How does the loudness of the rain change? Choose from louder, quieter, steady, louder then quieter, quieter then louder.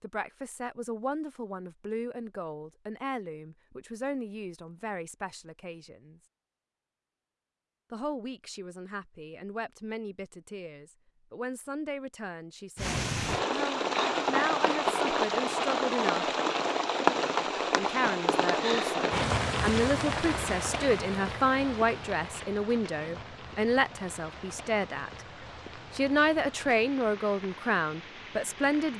quieter.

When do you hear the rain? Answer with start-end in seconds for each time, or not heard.
12.8-28.9.